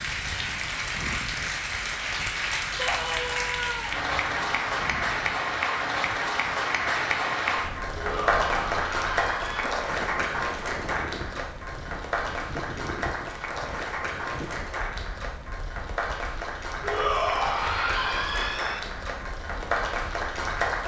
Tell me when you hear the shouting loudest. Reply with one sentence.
The loudest moment of the shouting is at 17 seconds.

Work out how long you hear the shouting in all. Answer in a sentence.
You can hear the shouting for 5 seconds altogether.